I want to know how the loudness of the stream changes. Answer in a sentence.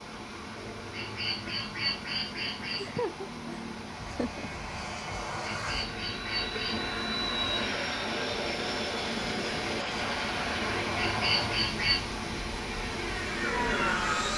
The volume of the stream goes up.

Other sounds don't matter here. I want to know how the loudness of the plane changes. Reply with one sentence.
The loudness of the plane goes up.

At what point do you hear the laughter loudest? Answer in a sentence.
The volume of the laughter peaks at 3 seconds.